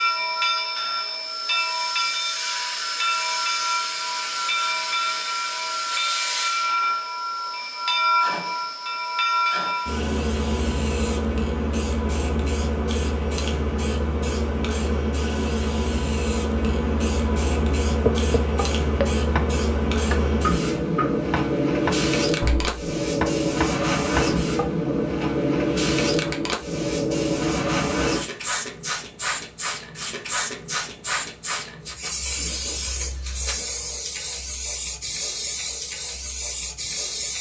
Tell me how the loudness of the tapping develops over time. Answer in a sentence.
The volume of the tapping goes down, then up.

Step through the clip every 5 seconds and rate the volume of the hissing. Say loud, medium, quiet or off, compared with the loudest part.
loud, loud, loud, loud, loud, loud, medium, medium.